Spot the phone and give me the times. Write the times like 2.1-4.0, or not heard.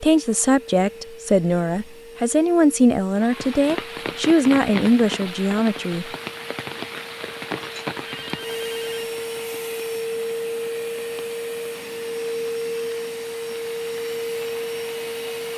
8.1-9.2.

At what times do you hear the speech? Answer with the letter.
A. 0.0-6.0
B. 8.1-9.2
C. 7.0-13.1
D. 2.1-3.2
A.